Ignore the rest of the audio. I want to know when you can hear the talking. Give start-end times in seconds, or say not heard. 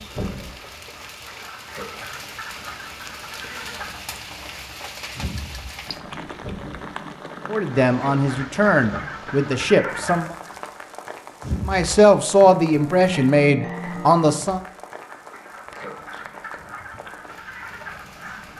7.5-10.3, 11.7-14.6.